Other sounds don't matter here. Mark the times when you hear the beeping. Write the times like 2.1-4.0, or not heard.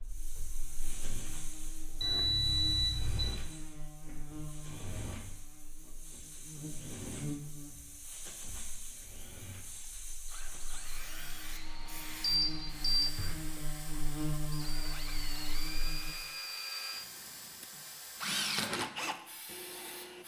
2.0-3.4, 12.2-13.3.